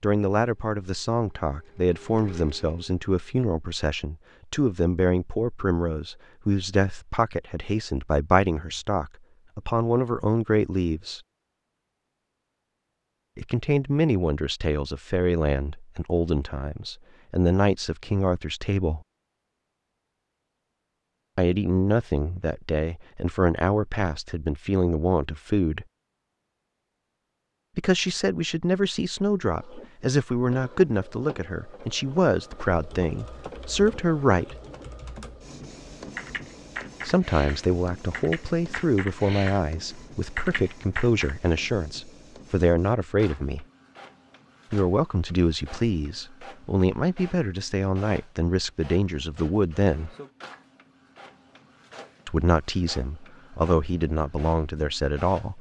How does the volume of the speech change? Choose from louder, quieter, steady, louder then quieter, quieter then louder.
steady.